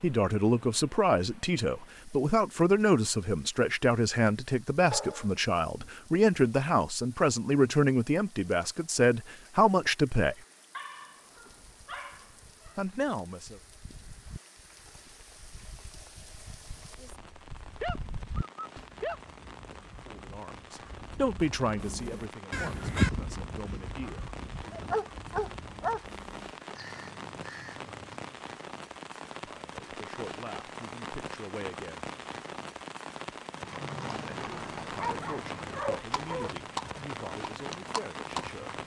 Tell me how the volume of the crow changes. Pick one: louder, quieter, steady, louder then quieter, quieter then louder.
louder then quieter.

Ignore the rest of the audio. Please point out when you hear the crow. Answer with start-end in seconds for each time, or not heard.
18.8-28.3.